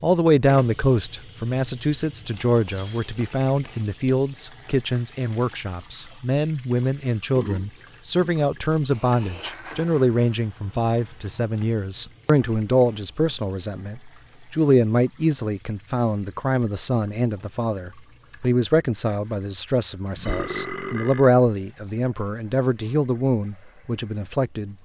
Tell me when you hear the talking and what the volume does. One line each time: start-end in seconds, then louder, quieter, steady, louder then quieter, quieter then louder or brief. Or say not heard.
0.0-24.8 steady.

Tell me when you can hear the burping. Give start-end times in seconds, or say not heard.
7.3-8.6, 20.1-21.2.